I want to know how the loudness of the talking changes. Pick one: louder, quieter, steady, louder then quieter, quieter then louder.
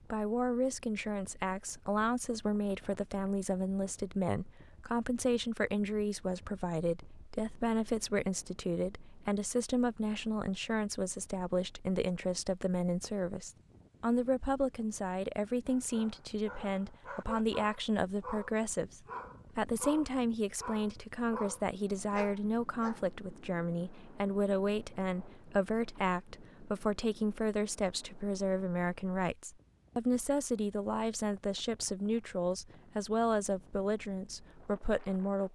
steady.